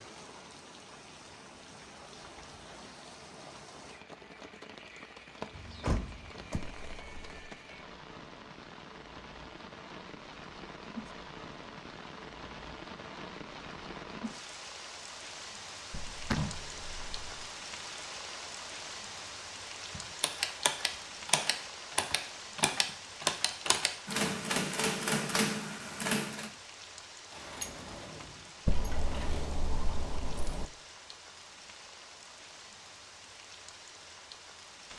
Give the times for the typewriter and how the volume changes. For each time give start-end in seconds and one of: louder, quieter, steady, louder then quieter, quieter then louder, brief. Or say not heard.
19.9-26.5 steady.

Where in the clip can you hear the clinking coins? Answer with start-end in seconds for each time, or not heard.
6.5-7.5, 15.9-17.6, 28.6-30.6.